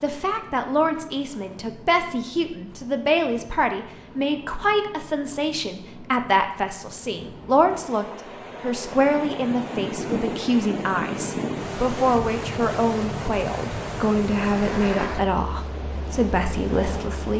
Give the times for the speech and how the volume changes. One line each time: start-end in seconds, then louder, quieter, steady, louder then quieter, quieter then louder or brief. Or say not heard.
0.0-17.3 steady.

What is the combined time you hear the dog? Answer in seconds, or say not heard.
not heard.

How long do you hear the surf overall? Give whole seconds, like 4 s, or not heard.
17 s.